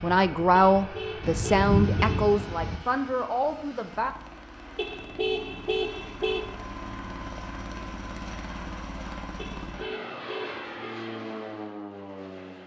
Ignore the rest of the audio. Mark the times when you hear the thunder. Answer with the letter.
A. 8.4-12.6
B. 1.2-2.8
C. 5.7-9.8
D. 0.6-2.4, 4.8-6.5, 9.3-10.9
B.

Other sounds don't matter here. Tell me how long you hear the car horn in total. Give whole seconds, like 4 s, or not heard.
5 s.